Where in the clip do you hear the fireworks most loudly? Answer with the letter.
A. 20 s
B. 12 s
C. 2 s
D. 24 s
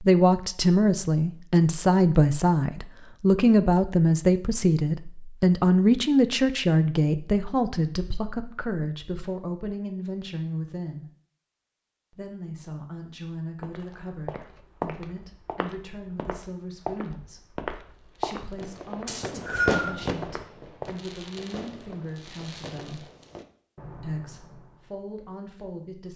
A.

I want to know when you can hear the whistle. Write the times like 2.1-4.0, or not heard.
19.1-19.9.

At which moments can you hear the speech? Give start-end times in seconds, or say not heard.
0.0-11.1, 12.1-23.1, 24.0-26.1.